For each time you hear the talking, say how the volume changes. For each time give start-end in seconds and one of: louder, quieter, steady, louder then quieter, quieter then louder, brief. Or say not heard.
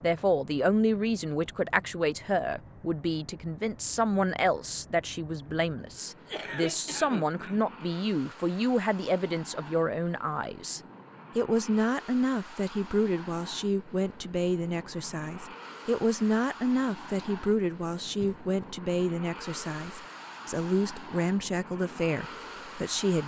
0.0-23.2 steady.